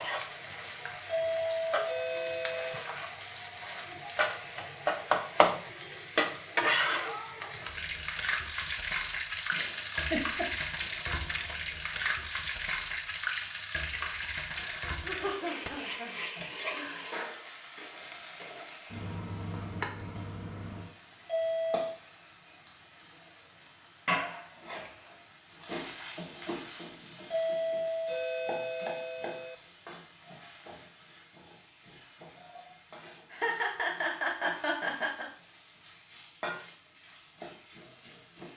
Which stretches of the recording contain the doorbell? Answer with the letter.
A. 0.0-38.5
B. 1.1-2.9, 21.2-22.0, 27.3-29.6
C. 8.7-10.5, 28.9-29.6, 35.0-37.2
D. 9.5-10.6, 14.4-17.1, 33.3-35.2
B.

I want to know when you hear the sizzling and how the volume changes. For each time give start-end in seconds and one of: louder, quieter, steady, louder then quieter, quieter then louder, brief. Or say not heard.
0.0-38.5 quieter.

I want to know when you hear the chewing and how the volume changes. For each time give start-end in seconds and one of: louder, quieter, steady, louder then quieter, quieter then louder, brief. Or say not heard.
not heard.